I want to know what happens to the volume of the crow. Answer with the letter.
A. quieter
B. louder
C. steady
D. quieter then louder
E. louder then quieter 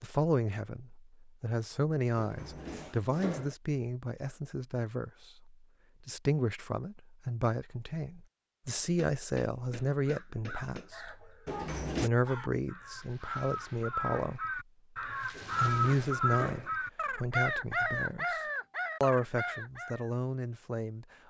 B.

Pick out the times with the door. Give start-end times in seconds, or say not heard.
2.1-3.5, 11.4-12.1, 15.3-16.7.